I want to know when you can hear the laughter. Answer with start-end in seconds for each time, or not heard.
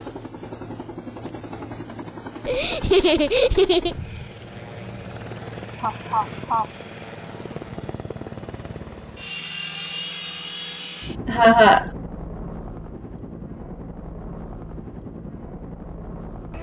2.5-4.0, 5.8-6.7, 11.2-11.8.